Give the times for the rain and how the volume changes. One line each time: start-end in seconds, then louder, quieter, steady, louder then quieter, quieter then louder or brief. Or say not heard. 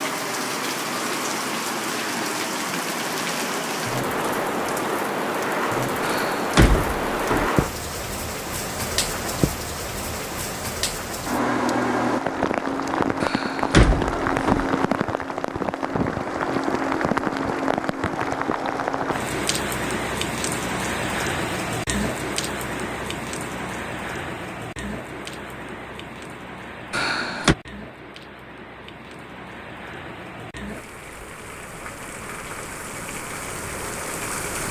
0.0-34.6 quieter.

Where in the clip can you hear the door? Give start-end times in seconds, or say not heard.
6.0-7.5, 13.2-14.7, 26.9-27.6.